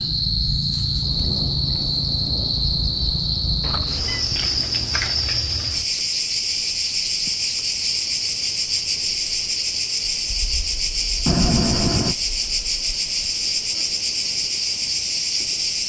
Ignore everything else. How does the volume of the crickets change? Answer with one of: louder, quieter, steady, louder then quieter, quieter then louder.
steady.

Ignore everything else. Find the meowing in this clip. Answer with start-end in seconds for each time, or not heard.
3.6-4.2, 11.2-12.2.